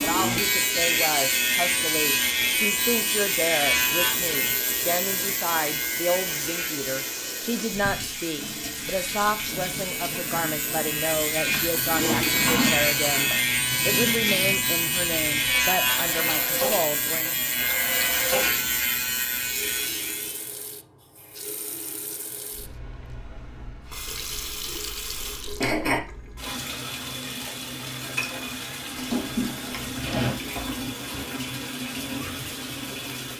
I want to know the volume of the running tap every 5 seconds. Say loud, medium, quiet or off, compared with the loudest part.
loud, loud, loud, loud, medium, loud, loud.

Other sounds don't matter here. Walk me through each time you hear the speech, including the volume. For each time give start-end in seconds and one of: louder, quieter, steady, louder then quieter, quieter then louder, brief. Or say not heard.
0.0-17.6 steady.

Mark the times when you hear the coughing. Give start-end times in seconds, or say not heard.
25.1-26.0.